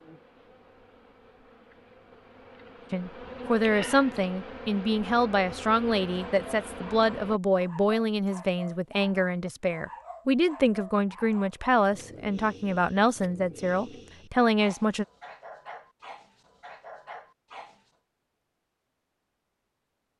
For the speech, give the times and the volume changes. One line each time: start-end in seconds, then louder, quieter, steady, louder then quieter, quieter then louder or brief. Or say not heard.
2.9-15.1 steady.